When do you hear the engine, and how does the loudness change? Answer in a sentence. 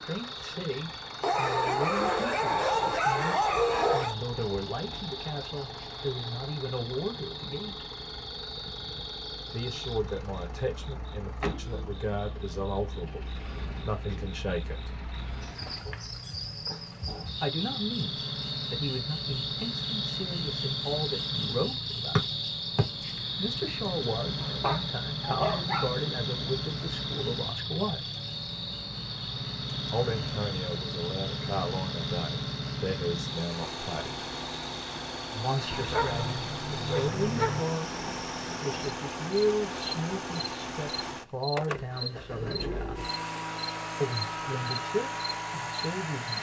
You can hear the engine from 0.0 to 46.3 s, getting louder.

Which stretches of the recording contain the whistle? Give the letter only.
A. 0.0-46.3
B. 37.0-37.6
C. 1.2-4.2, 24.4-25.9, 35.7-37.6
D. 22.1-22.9
D.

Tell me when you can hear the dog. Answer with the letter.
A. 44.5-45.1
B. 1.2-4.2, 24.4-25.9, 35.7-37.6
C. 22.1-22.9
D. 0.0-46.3
B.